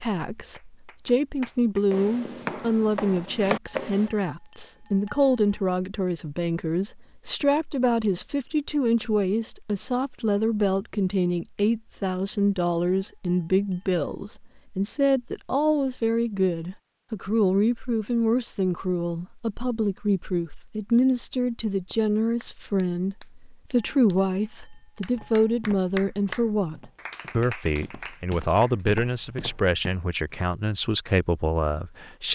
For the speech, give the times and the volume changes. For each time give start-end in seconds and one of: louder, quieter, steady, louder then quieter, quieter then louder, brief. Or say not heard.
0.0-32.2 steady.